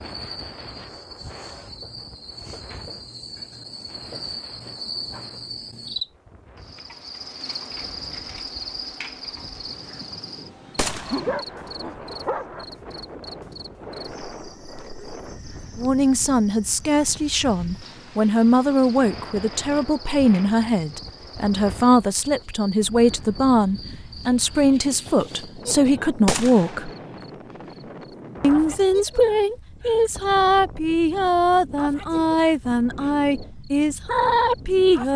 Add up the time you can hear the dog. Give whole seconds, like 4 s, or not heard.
2 s.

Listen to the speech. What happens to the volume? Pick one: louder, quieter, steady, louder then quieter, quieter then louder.
steady.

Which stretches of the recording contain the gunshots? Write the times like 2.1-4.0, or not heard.
10.8-11.4, 26.2-26.9.